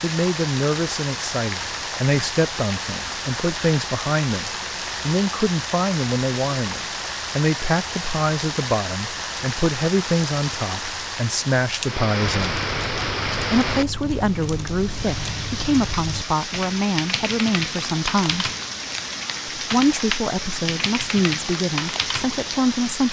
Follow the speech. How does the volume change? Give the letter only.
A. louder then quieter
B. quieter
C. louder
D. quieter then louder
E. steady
E.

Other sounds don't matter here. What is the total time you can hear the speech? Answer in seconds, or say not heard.
21 s.